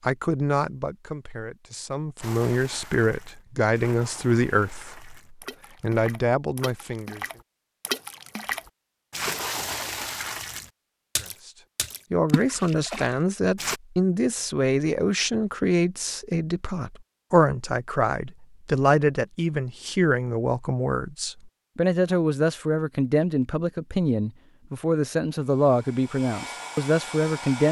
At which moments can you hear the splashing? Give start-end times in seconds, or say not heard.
2.2-13.8.